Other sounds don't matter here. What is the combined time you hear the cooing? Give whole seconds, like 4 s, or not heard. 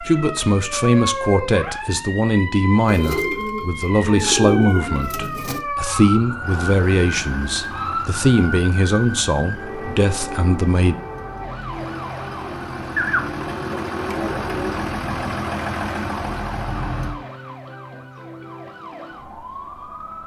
5 s.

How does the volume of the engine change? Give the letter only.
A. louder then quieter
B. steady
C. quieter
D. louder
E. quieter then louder
E.